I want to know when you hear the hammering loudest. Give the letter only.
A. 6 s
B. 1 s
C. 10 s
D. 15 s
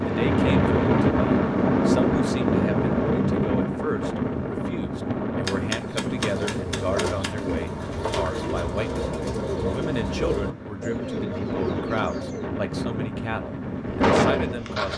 A.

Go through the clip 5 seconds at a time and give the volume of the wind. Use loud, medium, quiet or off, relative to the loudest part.
loud, medium, medium.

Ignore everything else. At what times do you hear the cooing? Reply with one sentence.
You can hear the cooing from 6.2 to 12.4 s.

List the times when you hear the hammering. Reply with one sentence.
The hammering can be heard from 5.4 to 7.3 s.